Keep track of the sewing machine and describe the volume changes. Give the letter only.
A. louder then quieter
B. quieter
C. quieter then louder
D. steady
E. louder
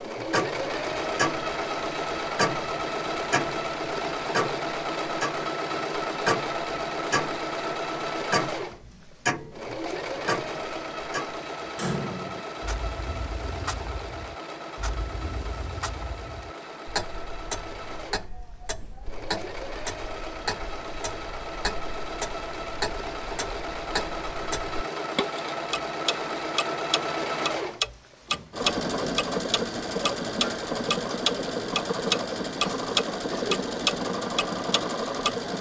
C.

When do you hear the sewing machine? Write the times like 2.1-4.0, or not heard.
0.0-35.5.